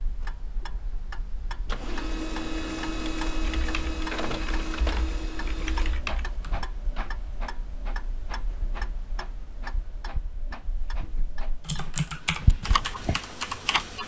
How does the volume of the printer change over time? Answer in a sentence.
The volume of the printer goes down.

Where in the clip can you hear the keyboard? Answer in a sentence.
The keyboard can be heard from 3.4 to 6.7 s and from 11.7 to 14.0 s.